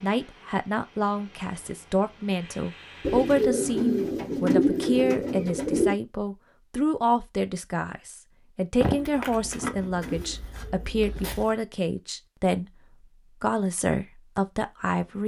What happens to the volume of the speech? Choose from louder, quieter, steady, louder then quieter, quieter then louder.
steady.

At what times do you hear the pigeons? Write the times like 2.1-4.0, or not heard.
3.0-6.0, 8.8-11.4.